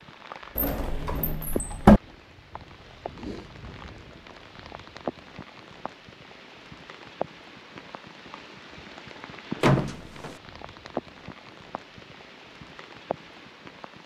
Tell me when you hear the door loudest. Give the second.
2 s.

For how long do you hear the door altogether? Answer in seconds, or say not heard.
2 s.